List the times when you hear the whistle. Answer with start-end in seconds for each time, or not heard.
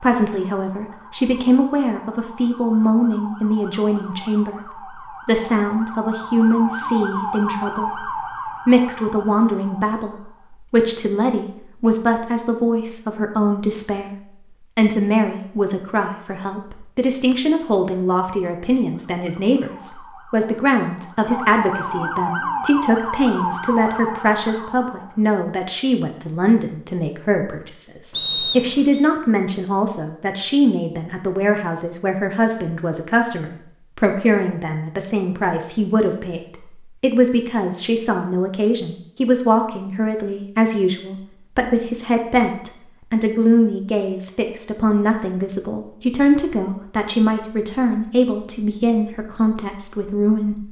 28.1-29.0.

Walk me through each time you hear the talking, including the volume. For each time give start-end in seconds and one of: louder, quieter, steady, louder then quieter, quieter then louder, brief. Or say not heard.
0.0-14.2 steady
14.8-50.6 steady.